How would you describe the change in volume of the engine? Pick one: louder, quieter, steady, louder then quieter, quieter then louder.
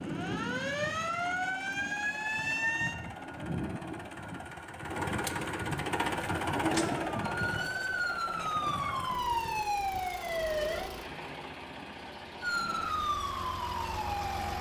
louder then quieter.